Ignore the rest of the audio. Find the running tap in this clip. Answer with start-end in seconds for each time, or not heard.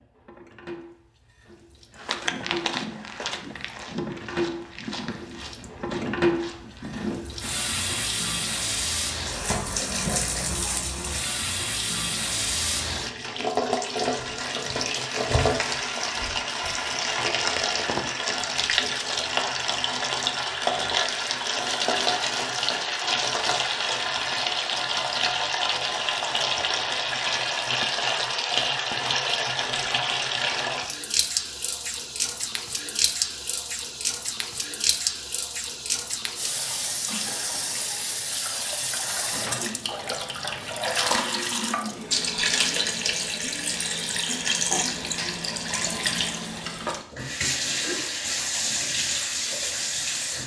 0.0-50.4.